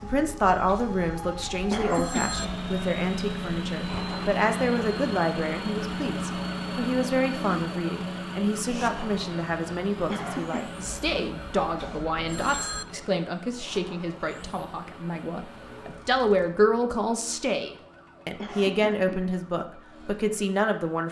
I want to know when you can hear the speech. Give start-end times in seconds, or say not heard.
0.0-21.0.